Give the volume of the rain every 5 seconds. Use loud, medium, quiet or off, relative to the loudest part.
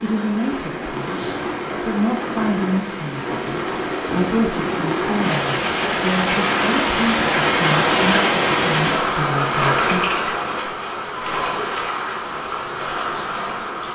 medium, loud, medium.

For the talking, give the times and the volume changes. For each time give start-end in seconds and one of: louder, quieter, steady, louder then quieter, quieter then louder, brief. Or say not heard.
0.0-10.2 steady.